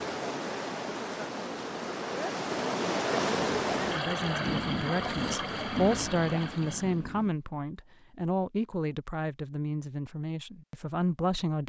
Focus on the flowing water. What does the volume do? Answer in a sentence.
The loudness of the flowing water goes up, then down.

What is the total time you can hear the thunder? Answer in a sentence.
The thunder can be heard for 4 seconds in total.